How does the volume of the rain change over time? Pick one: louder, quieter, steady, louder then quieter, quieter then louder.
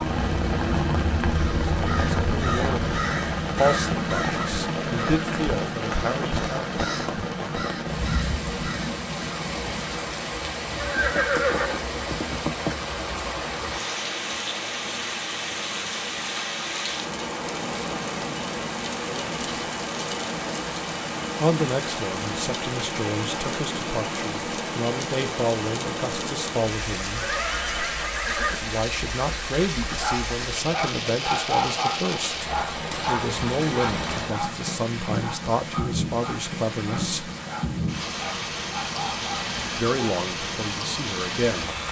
steady.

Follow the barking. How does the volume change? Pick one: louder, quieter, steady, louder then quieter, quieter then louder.
quieter.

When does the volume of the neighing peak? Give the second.
11 s.